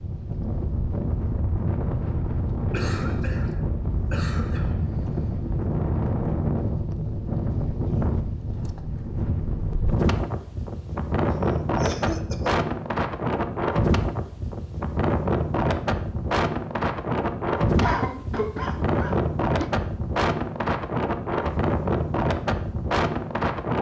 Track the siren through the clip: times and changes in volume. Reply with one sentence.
You can't hear the siren here.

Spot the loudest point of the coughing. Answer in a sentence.
The volume of the coughing peaks at 18 seconds.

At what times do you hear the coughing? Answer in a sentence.
You can hear the coughing from 2.7 to 4.8 s, from 11.3 to 12.6 s and from 17.8 to 19.7 s.